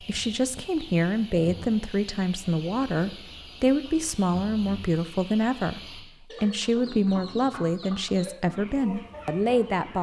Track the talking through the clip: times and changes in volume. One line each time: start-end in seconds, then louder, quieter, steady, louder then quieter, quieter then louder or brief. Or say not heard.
0.1-9.9 steady.